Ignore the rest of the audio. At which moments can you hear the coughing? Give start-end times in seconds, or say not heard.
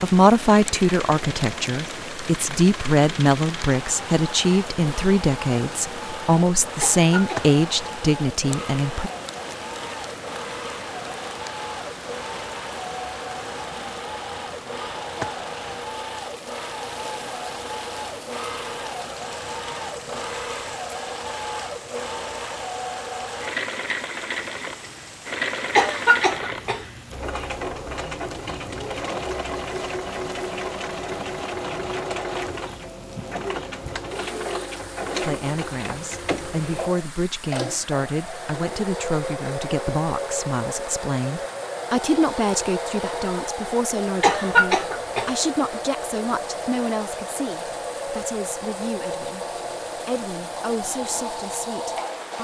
6.8-7.5, 25.8-26.9, 44.2-45.3.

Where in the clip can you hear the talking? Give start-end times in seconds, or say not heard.
0.0-9.1, 35.2-52.4.